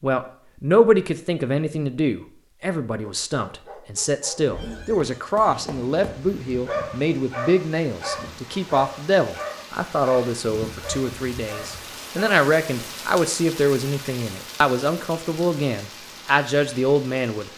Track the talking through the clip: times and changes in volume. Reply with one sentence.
You can hear the talking from 0.0 to 17.5 s, at a steady volume.